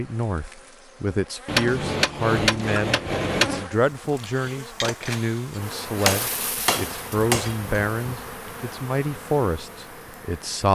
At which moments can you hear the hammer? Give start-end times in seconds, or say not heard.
1.4-3.6, 6.0-7.5.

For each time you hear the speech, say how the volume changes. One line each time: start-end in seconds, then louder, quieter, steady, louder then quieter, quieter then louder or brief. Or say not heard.
0.0-10.6 steady.